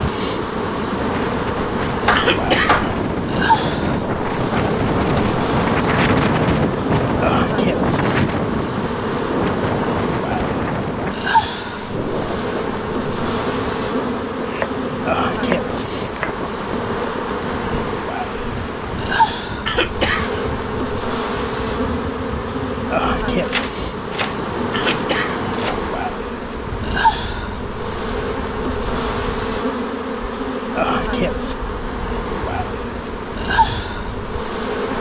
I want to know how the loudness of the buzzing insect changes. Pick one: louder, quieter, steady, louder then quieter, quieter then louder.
steady.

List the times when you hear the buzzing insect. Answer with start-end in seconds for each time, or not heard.
0.0-34.9.